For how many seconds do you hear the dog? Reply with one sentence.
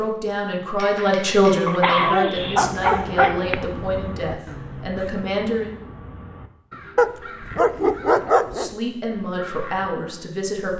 The dog can be heard for 4 seconds in total.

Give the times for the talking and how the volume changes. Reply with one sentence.
You can hear the talking from 0.0 to 5.8 s, getting quieter; and briefly from 8.5 to 10.7 s.